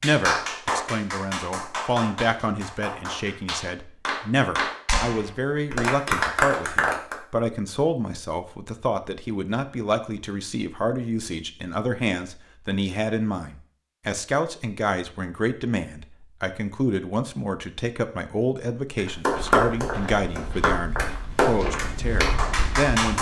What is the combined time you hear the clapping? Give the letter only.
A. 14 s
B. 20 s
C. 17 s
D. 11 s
D.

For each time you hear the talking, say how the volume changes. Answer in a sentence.
The talking can be heard from 0.0 to 23.1 s, at a steady volume.